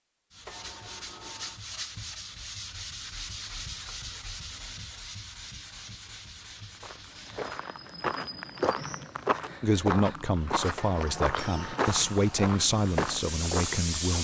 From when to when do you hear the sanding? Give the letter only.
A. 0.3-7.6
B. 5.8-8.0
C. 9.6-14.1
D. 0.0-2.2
A.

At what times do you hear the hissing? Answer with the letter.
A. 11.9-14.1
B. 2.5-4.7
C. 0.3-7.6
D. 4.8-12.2
A.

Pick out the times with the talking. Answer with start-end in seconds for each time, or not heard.
9.6-14.1.